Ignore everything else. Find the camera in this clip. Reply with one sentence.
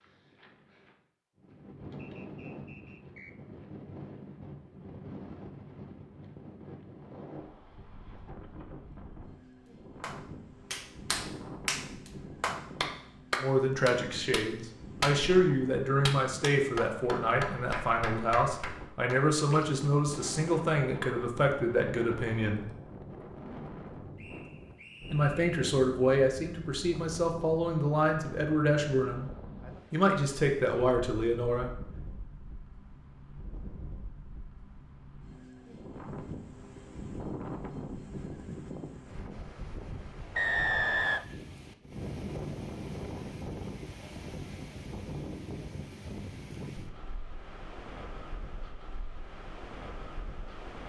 You can't hear the camera here.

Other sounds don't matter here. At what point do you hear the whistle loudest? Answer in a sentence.
The loudest moment of the whistle is at 41 seconds.